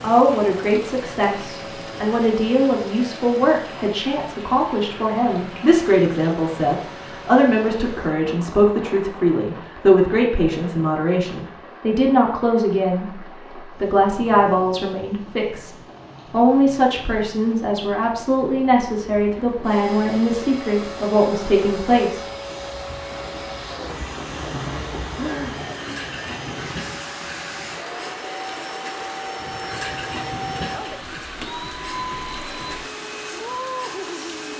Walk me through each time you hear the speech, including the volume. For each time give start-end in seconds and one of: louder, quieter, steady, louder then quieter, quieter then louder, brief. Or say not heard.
0.0-22.2 steady.